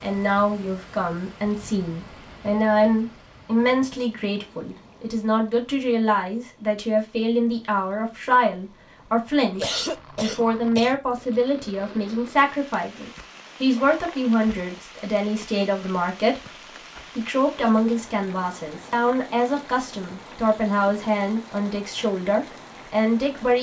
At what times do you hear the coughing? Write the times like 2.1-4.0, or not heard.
9.5-11.4.